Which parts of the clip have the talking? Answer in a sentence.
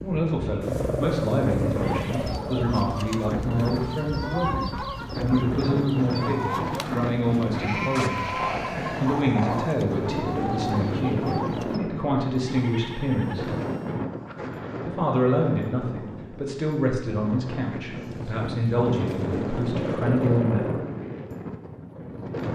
The talking can be heard from 0.0 to 8.3 s, from 9.0 to 13.5 s and from 14.8 to 20.7 s.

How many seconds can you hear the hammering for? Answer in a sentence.
The hammering can't be heard in this clip.